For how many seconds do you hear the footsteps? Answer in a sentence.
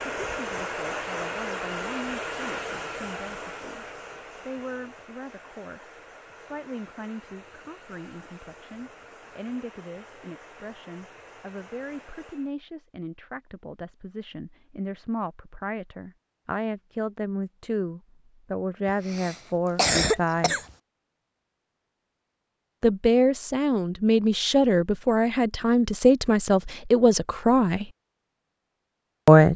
You can't hear the footsteps here.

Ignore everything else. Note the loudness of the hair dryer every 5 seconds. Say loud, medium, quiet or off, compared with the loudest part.
loud, quiet, quiet, off, off, off.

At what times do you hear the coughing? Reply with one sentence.
You can hear the coughing from 18.9 to 20.6 s.